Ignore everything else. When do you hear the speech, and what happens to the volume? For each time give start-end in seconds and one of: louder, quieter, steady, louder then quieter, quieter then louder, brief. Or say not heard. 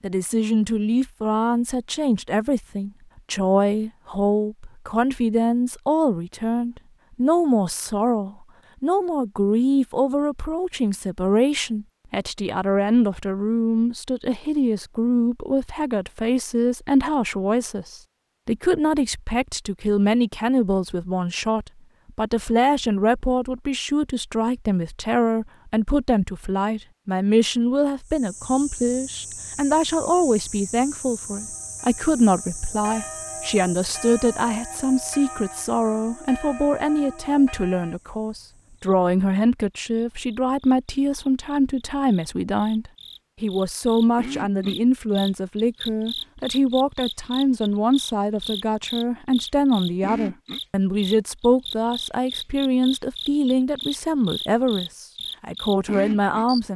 0.0-56.7 steady.